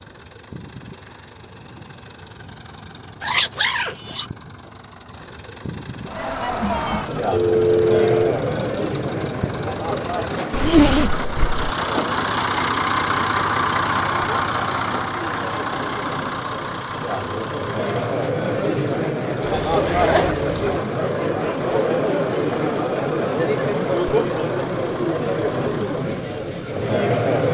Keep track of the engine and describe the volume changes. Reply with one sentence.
The volume of the engine goes up, then down.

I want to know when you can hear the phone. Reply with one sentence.
You can hear the phone from 7.3 to 8.3 s.